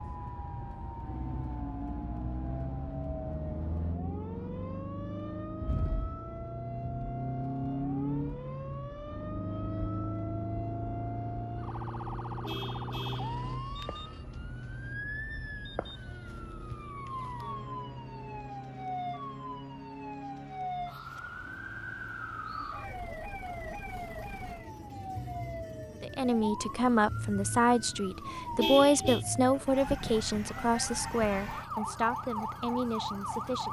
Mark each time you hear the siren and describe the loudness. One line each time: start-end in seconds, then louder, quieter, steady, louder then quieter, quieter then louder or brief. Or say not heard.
0.0-33.6 louder.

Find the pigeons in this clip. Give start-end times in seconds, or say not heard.
not heard.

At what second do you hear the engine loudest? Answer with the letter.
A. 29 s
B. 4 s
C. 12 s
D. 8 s
D.